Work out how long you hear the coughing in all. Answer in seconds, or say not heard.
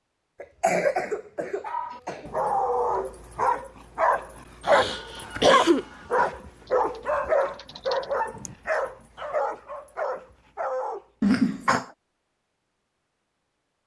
4 s.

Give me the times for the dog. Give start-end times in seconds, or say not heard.
1.6-11.1.